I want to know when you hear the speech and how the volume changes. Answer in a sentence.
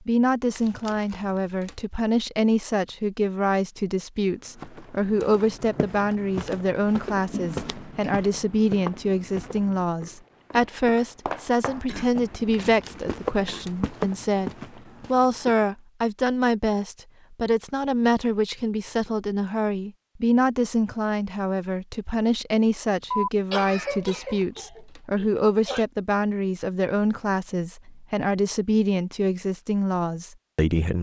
You can hear the speech from 0.1 to 30.9 s, at a steady volume.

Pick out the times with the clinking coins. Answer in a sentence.
You can't hear the clinking coins here.